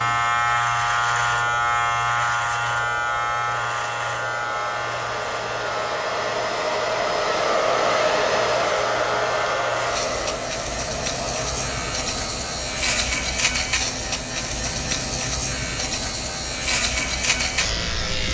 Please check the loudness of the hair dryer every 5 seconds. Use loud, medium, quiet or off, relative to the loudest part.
quiet, loud, medium, quiet.